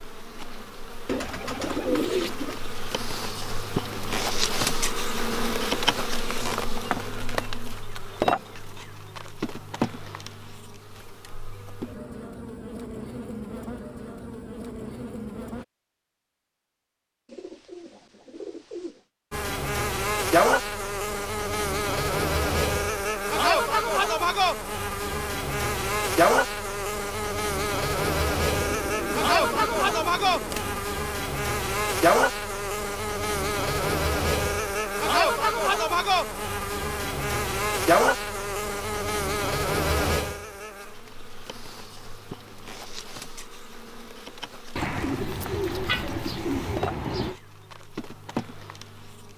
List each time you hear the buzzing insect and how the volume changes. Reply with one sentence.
You can hear the buzzing insect from 0.0 to 15.7 s, getting louder then quieter; and from 19.3 to 49.3 s, getting quieter.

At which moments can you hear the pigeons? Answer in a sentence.
You can hear the pigeons from 1.1 to 2.6 s, from 17.2 to 19.1 s, from 28.5 to 30.8 s and from 44.8 to 47.4 s.